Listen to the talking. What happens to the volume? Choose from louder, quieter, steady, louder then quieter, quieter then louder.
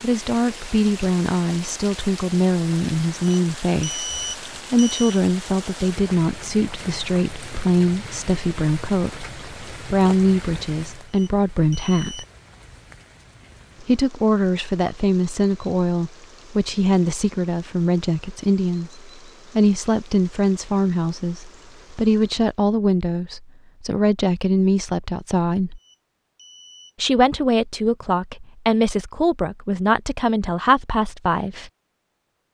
steady.